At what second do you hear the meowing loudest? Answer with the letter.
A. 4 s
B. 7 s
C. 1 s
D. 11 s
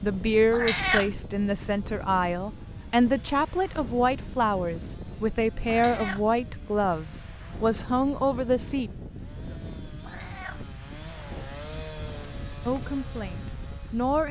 C.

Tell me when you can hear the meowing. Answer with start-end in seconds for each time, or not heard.
0.5-1.1, 5.7-6.2, 10.0-10.6.